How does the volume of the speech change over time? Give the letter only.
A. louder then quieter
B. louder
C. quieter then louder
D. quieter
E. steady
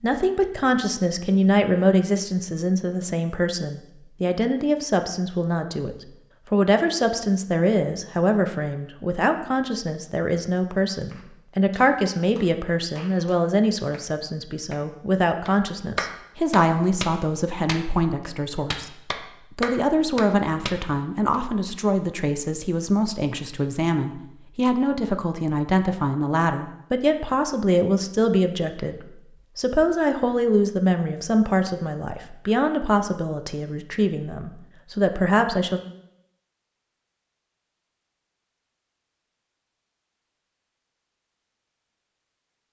E.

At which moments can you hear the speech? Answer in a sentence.
The speech can be heard from 0.0 to 35.8 s.